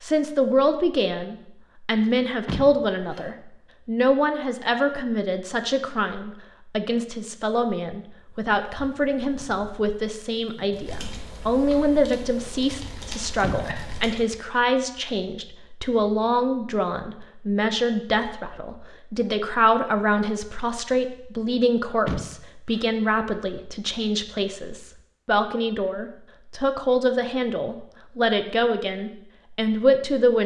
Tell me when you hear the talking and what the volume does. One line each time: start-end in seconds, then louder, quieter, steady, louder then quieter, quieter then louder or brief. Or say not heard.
0.0-30.4 steady.